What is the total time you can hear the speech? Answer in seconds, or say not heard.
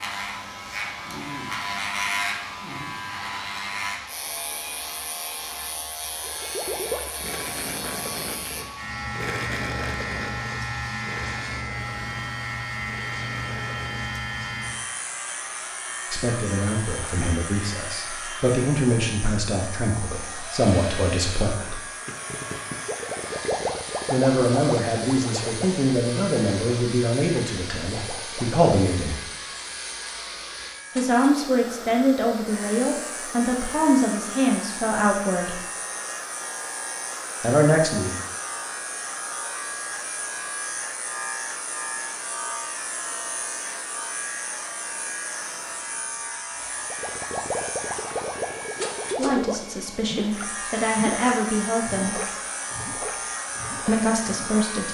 20 s.